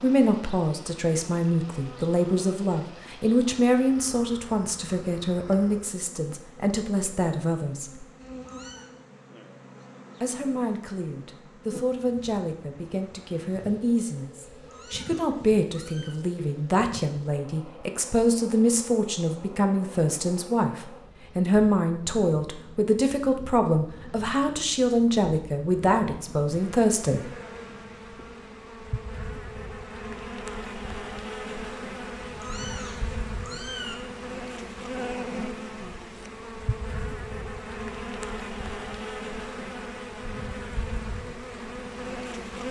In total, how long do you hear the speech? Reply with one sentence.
You can hear the speech for 25 seconds altogether.